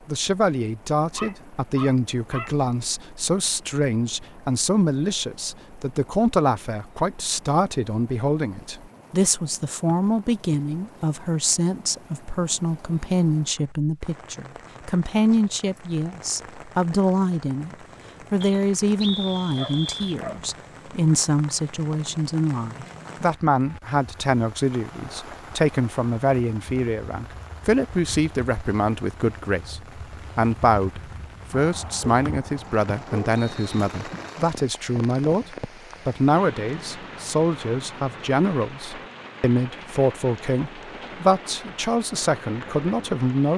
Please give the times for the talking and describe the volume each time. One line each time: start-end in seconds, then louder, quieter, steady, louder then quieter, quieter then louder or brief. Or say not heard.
0.1-43.5 steady.